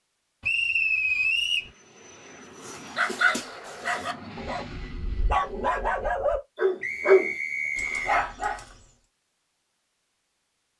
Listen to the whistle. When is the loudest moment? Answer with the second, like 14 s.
1 s.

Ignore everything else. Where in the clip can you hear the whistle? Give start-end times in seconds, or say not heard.
0.4-1.7, 6.8-8.2.